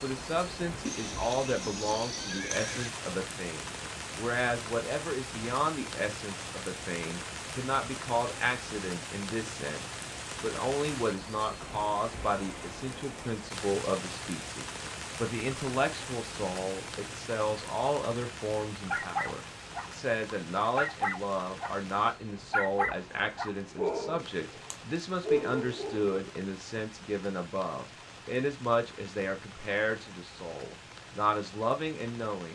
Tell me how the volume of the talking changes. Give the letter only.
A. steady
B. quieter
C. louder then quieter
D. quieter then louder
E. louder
A.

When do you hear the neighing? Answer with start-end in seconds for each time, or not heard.
0.8-3.0.